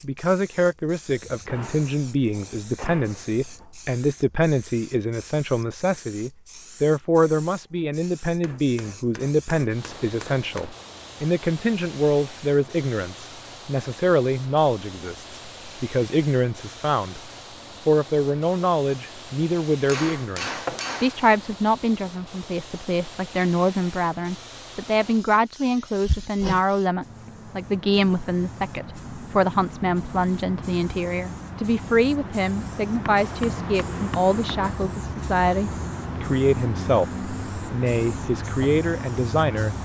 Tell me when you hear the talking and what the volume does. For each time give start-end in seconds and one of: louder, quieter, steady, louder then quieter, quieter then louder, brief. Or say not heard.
0.0-17.2 steady
17.9-39.7 steady.